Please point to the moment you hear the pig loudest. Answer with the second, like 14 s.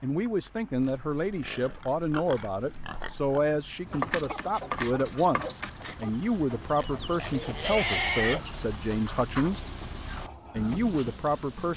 8 s.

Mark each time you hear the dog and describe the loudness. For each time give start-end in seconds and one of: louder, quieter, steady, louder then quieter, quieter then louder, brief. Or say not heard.
not heard.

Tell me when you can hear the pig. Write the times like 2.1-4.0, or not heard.
0.7-3.4, 6.8-8.5.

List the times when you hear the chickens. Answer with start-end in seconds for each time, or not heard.
3.9-10.8.